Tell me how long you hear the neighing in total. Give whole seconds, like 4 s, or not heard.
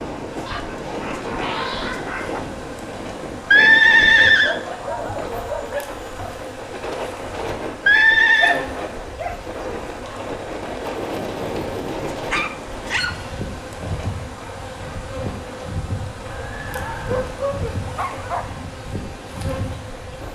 3 s.